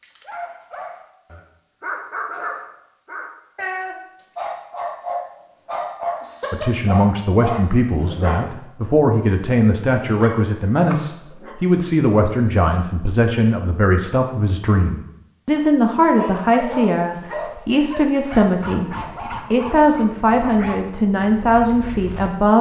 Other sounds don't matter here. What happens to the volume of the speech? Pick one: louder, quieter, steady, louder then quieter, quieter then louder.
steady.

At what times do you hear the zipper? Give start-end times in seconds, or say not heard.
not heard.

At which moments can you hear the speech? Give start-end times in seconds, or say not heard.
6.5-22.5.